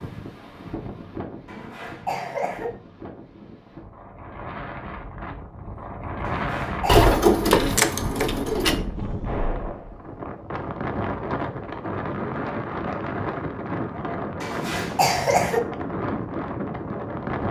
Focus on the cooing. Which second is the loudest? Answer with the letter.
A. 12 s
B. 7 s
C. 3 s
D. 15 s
B.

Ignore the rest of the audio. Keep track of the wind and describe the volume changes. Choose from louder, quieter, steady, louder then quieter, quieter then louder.
louder.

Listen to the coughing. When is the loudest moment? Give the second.
15 s.